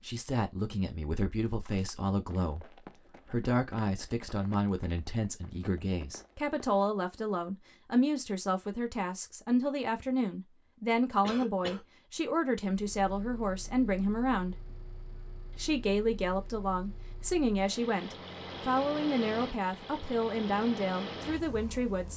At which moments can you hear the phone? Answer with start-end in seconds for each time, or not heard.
not heard.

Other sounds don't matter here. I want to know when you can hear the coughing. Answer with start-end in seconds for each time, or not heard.
11.2-11.8.